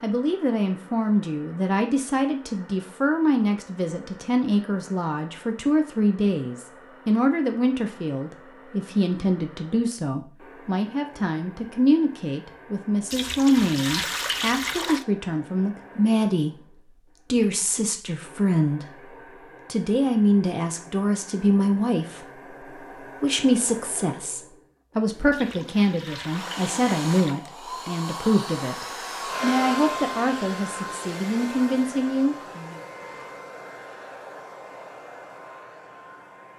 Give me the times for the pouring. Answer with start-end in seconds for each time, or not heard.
13.1-15.1, 25.3-27.4.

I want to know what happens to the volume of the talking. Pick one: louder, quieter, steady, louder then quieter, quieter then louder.
steady.